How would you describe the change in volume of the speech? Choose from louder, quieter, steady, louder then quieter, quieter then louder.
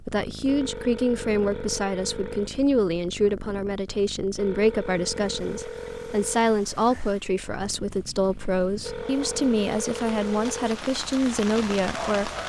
steady.